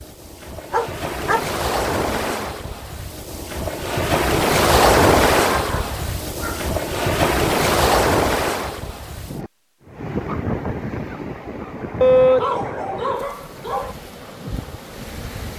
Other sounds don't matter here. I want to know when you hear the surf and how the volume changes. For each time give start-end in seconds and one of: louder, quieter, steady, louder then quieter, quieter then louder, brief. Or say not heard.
0.0-15.5 louder then quieter.